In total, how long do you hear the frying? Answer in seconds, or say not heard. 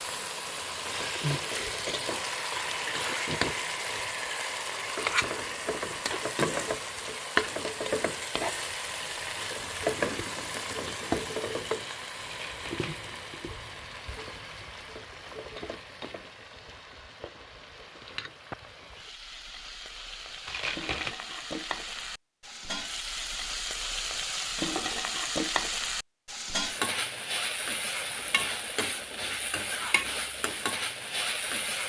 32 s.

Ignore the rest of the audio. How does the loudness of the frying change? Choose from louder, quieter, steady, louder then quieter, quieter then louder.
quieter then louder.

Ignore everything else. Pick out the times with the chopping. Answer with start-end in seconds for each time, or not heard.
not heard.